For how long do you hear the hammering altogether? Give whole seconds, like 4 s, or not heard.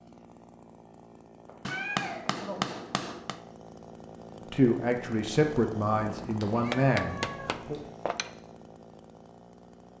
3 s.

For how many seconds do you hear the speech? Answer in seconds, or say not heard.
3 s.